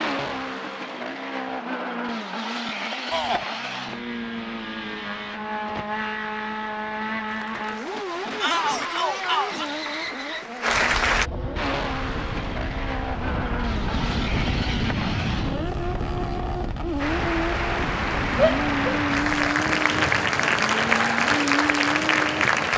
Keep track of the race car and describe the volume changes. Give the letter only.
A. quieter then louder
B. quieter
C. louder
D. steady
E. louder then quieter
D.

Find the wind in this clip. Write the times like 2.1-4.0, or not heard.
10.7-22.7.